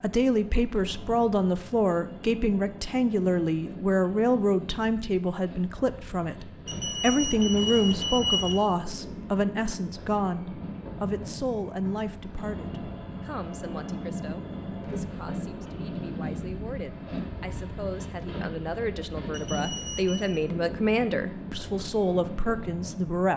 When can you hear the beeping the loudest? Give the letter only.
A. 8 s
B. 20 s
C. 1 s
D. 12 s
A.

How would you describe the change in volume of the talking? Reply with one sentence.
The loudness of the talking goes down, then up.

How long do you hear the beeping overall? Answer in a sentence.
You can hear the beeping for 3 seconds altogether.